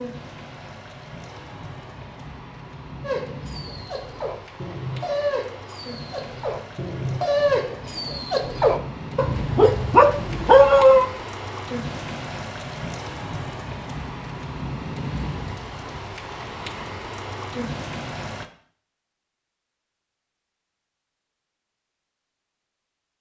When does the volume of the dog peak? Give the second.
11 s.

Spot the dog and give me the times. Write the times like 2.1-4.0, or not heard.
3.0-11.1.